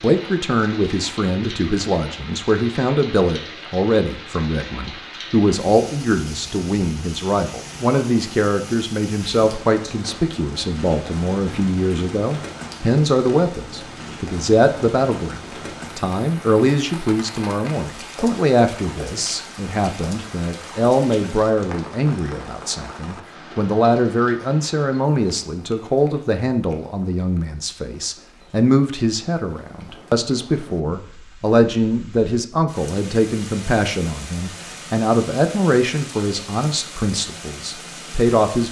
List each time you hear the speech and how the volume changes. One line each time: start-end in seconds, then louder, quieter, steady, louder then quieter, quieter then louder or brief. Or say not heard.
0.0-38.6 steady.